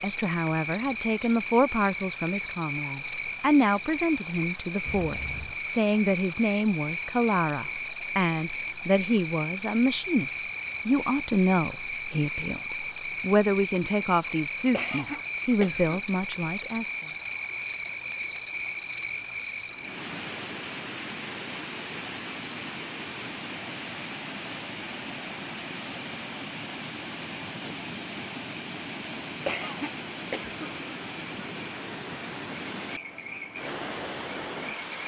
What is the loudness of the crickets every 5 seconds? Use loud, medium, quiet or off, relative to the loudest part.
loud, loud, loud, loud, quiet, quiet, quiet.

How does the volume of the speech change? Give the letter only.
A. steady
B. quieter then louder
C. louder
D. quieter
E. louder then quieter
A.